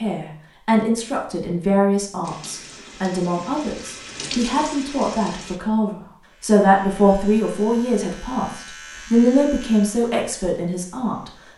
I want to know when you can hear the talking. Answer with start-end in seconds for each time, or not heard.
0.0-11.3.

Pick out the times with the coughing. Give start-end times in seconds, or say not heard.
not heard.